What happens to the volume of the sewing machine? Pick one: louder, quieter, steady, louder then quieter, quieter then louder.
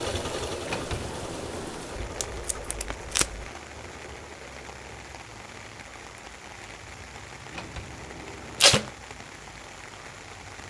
quieter.